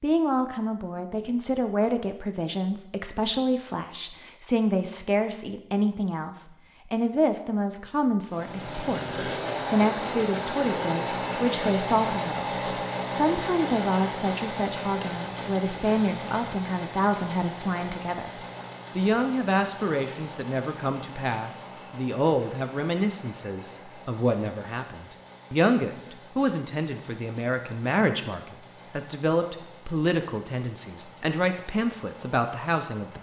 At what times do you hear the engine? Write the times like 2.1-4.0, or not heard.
8.2-33.1.